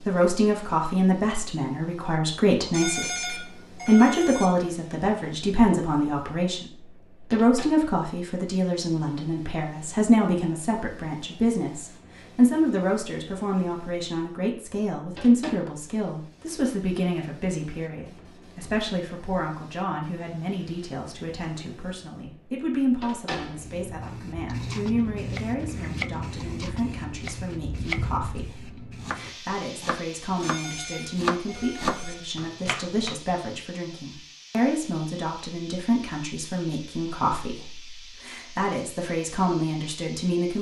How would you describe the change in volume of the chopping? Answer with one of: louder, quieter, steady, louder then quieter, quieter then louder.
louder.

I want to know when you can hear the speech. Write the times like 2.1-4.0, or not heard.
0.0-40.5.